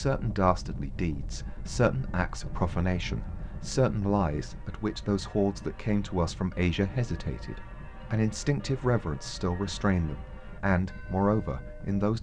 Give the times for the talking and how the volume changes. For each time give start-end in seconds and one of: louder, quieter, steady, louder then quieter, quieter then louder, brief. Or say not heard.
0.0-12.1 steady.